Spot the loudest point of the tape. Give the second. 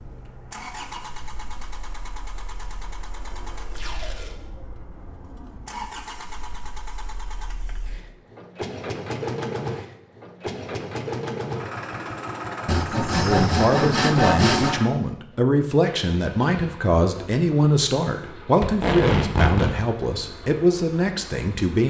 19 s.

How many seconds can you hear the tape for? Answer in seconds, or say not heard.
2 s.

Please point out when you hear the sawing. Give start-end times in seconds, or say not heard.
12.7-14.8.